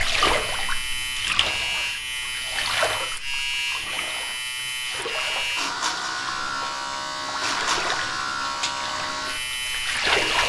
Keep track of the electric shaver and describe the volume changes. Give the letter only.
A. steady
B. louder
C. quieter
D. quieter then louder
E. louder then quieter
A.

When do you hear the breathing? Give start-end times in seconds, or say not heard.
not heard.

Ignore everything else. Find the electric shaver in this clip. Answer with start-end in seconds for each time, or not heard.
0.2-10.4.